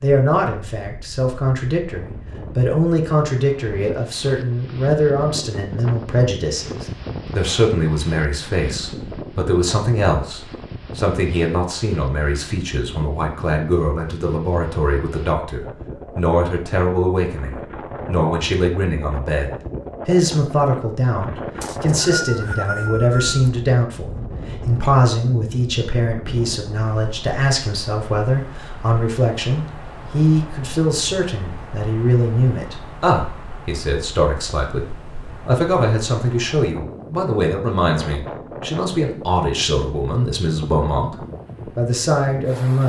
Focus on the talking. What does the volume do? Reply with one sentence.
The volume of the talking stays about the same.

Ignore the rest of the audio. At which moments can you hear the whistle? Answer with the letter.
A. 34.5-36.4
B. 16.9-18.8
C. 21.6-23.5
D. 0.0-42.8
C.